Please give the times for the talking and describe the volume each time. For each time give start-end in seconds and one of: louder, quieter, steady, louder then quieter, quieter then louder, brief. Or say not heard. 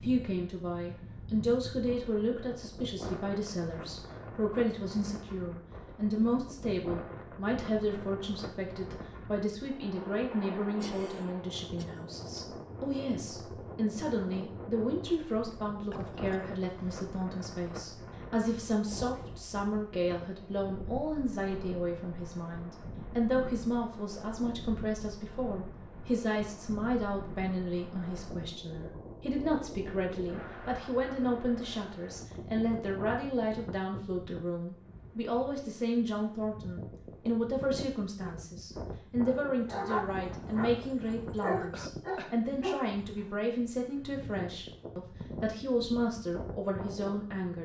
0.0-47.5 steady.